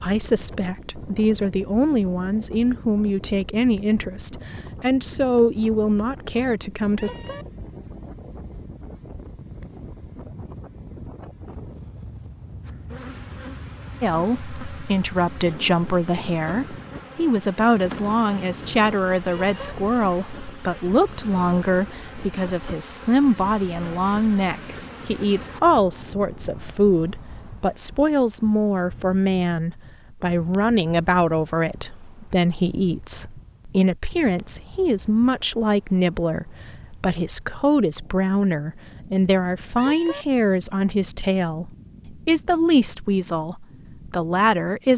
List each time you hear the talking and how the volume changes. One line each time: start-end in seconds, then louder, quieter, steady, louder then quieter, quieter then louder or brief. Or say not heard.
0.0-7.1 steady
14.0-44.9 steady.